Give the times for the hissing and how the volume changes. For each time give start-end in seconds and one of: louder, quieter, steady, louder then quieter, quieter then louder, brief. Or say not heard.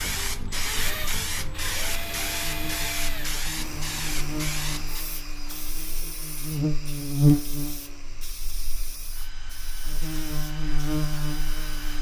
0.0-11.7 quieter.